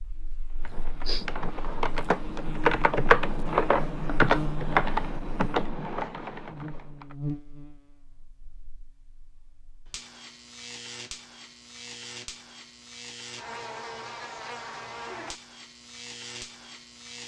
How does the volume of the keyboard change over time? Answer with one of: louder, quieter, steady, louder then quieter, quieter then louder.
louder then quieter.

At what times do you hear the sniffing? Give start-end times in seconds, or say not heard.
0.6-1.2.